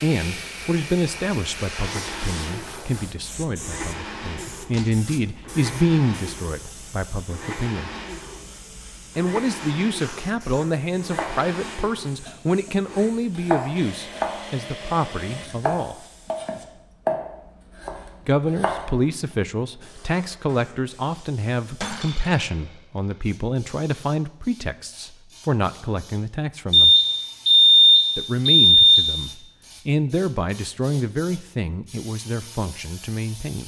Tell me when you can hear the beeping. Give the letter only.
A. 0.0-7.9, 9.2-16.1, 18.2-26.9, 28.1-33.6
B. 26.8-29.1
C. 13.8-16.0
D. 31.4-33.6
B.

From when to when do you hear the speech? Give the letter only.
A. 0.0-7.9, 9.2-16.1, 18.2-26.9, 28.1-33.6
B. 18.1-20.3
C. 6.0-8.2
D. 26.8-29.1
A.